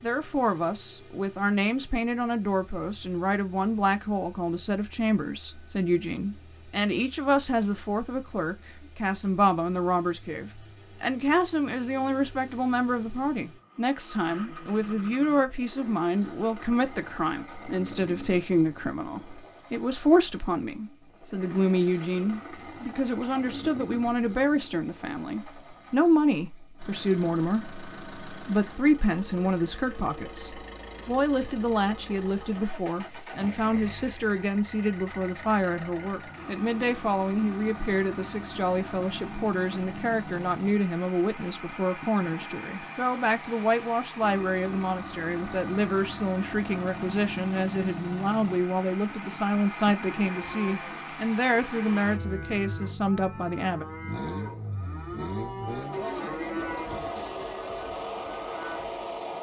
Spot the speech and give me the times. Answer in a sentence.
The speech can be heard from 0.0 to 53.9 s.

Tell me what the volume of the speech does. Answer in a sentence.
The volume of the speech stays about the same.